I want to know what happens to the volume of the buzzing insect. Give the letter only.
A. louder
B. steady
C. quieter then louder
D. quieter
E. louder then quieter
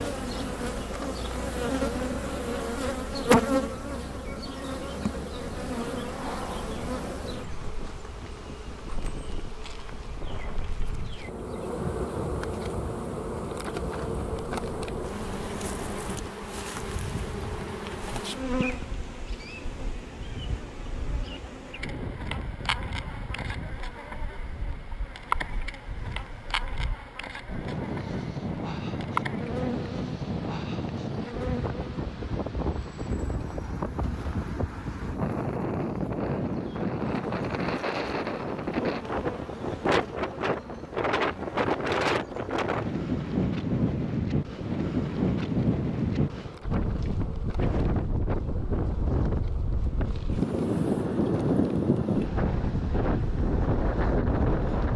D.